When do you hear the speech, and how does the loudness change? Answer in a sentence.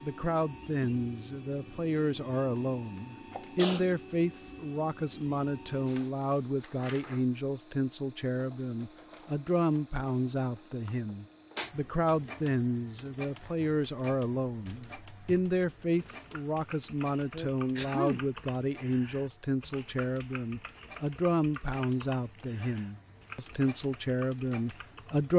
You can hear the speech from 0.0 to 25.3 s, at a steady volume.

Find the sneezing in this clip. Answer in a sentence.
You can hear the sneezing from 3.4 to 3.8 s and from 17.3 to 18.2 s.